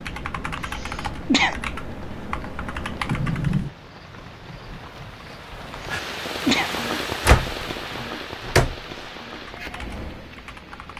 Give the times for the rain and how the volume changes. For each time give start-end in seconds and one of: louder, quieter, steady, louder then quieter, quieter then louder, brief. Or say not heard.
0.0-10.9 louder then quieter.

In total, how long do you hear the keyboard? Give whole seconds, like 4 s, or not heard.
5 s.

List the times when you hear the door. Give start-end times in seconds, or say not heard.
3.1-3.7, 7.2-8.8.